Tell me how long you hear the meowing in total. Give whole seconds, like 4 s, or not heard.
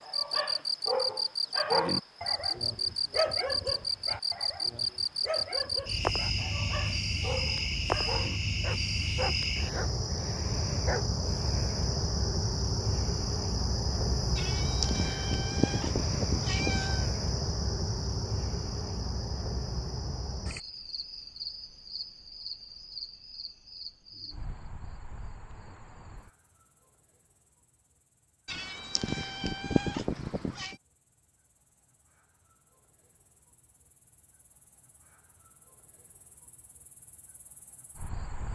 5 s.